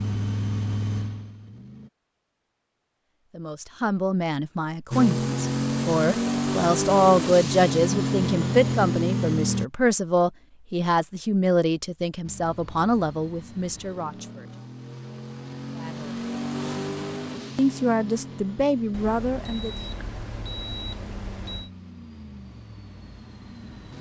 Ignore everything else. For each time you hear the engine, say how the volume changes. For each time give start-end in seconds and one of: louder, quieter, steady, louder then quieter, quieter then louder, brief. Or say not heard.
0.0-1.9 brief
4.9-9.7 steady
12.2-23.9 louder then quieter.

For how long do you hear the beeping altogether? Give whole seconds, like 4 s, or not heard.
3 s.